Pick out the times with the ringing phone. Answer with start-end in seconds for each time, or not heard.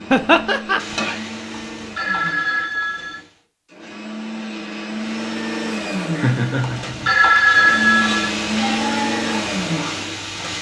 1.5-3.1, 6.6-8.2.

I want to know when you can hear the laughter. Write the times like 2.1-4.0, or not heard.
0.1-0.8, 6.2-7.2.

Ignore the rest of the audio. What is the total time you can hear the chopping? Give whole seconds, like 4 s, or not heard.
not heard.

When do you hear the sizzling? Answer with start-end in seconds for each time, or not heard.
0.0-3.5, 5.0-10.5.